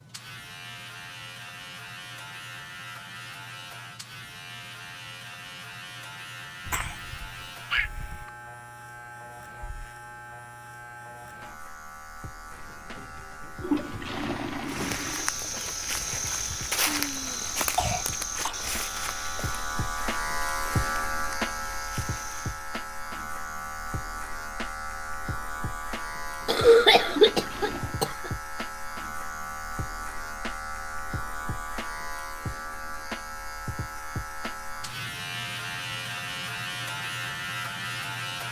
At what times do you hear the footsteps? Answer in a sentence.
The footsteps can be heard from 14.7 to 22.7 s.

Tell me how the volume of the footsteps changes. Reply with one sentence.
The volume of the footsteps goes down.